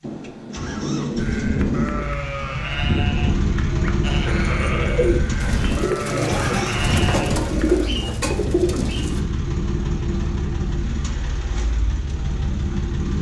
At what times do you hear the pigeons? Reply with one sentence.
You can hear the pigeons from 4.0 to 9.2 s.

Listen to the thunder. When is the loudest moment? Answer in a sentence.
The loudest moment of the thunder is at 2 seconds.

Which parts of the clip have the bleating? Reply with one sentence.
You can hear the bleating from 1.1 to 7.8 s.